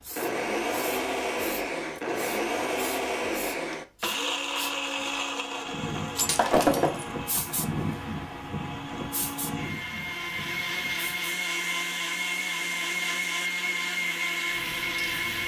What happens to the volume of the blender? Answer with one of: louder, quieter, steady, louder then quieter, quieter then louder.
quieter then louder.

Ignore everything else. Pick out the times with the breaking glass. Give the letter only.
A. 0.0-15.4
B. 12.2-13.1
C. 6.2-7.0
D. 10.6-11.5
C.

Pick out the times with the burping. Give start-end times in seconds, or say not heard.
not heard.